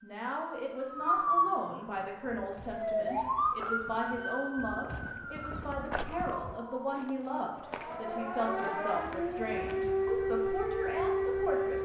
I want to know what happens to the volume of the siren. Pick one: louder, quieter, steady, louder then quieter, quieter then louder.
quieter then louder.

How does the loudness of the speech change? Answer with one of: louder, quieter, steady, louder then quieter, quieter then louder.
steady.